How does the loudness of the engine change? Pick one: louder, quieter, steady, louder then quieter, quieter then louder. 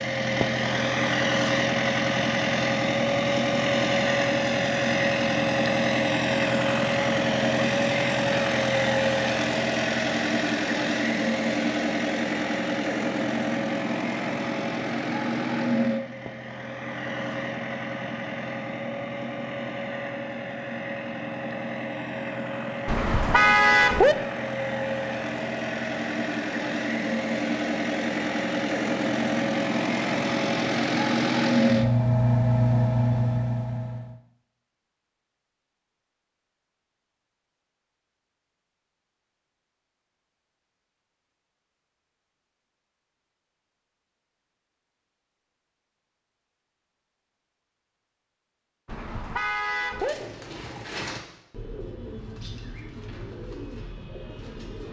quieter then louder.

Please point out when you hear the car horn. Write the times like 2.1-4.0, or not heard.
22.9-24.1, 48.9-50.1.